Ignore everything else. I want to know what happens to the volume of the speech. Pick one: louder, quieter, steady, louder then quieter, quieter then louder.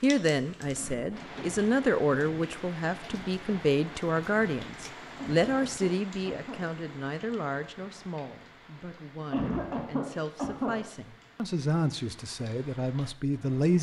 quieter then louder.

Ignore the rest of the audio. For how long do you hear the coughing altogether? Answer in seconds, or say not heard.
4 s.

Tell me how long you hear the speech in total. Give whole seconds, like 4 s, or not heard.
14 s.